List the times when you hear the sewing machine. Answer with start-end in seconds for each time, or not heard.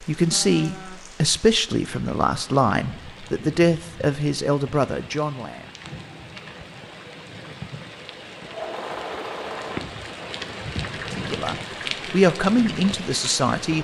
8.4-9.9.